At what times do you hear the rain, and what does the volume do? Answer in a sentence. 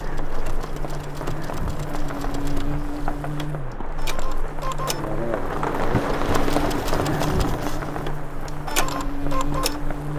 You can hear the rain from 0.0 to 10.1 s, getting louder then quieter.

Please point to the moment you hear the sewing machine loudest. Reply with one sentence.
The volume of the sewing machine peaks at 9 seconds.